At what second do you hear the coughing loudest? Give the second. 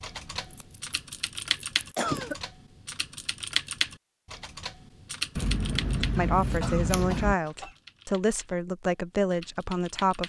2 s.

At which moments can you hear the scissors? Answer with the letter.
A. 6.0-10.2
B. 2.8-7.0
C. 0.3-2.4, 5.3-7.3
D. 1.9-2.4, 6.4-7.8
C.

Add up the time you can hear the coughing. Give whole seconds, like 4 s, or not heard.
2 s.